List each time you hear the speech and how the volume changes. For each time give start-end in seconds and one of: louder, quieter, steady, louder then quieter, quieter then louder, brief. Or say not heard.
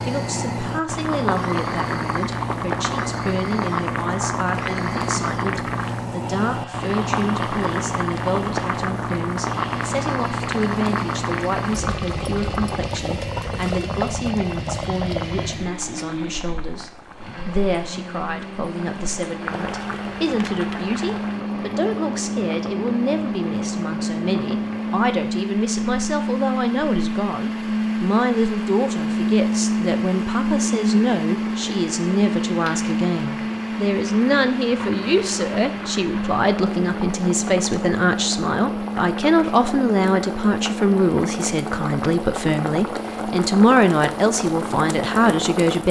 0.1-45.8 louder.